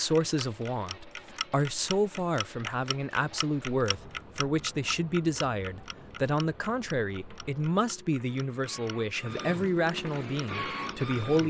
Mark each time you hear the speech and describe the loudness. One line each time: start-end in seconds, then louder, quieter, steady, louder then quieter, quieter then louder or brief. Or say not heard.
0.0-11.4 steady.